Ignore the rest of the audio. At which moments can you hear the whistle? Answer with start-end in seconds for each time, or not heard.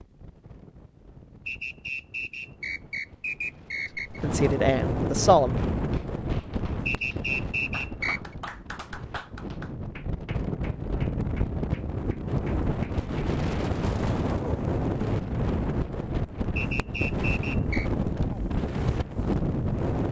1.4-4.2, 6.8-8.2, 16.6-17.9.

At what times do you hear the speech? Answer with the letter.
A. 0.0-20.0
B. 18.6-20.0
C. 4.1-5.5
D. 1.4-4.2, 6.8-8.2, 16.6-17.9
C.